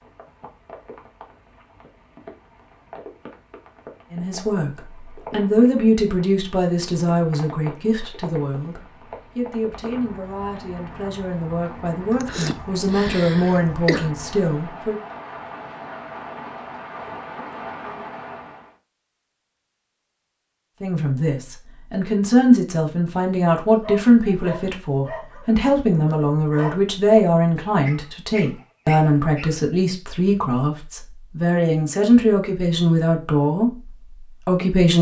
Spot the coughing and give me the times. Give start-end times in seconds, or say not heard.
12.1-14.1.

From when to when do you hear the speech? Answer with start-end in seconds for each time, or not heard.
4.1-14.9, 20.8-34.9.